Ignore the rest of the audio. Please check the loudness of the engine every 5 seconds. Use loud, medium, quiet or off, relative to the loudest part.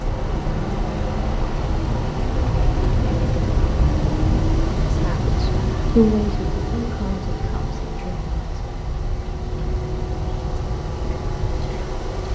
loud, medium, medium.